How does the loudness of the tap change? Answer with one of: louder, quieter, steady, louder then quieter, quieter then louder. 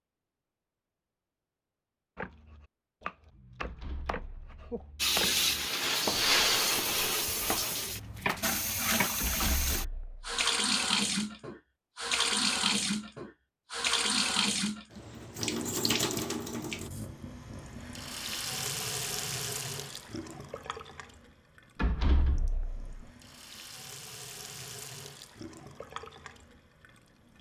quieter.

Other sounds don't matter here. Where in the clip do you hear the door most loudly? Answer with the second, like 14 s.
22 s.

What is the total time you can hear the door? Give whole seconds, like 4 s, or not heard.
4 s.